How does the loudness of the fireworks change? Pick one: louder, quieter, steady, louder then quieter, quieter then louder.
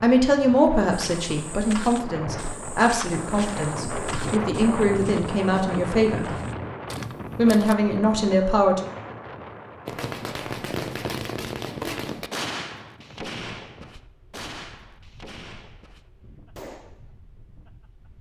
quieter.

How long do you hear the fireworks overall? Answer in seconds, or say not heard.
7 s.